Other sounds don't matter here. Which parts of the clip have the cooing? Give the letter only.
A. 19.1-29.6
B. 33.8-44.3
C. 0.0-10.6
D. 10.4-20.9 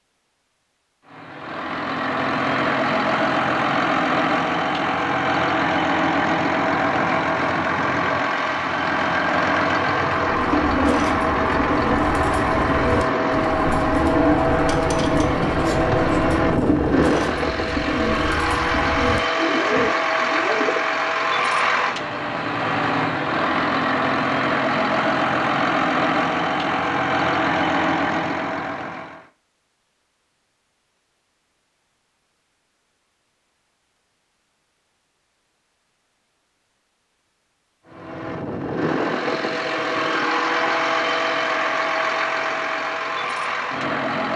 D.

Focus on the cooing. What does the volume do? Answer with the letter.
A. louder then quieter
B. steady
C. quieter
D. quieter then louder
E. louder
B.